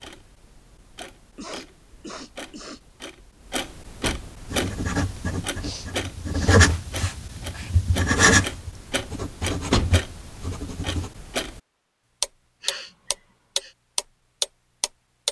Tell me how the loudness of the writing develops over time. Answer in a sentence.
The loudness of the writing goes up, then down.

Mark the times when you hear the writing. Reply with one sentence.
You can hear the writing from 4.5 to 11.1 s.